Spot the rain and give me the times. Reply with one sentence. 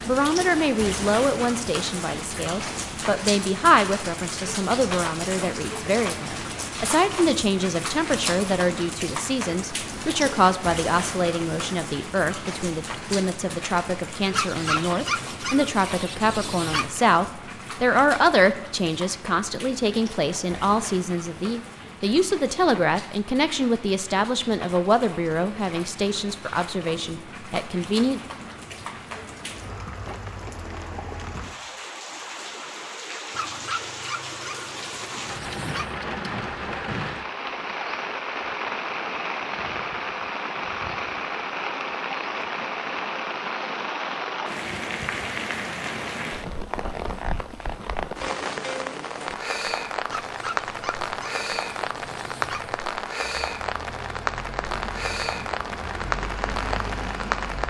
You can hear the rain from 0.0 to 57.6 s.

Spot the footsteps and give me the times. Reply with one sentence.
You can't hear the footsteps here.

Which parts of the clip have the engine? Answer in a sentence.
The engine can be heard from 53.1 to 57.6 s.